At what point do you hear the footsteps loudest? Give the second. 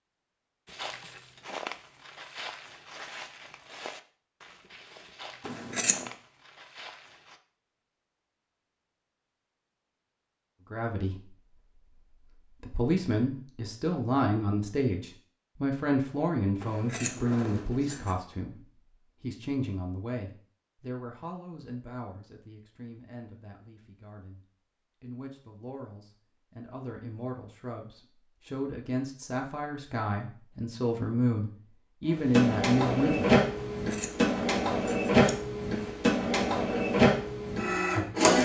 2 s.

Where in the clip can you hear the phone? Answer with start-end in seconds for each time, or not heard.
not heard.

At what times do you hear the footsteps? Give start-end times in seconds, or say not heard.
0.7-7.4.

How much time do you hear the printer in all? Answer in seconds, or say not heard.
6 s.